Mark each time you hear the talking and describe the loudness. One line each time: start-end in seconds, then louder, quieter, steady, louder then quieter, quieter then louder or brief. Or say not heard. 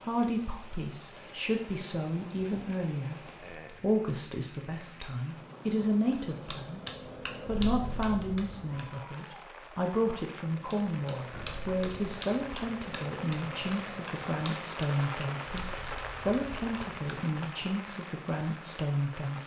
0.0-19.4 steady.